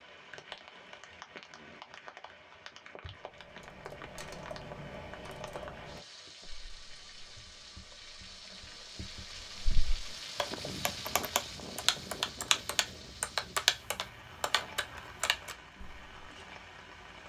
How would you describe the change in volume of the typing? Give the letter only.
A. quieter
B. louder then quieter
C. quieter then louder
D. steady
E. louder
C.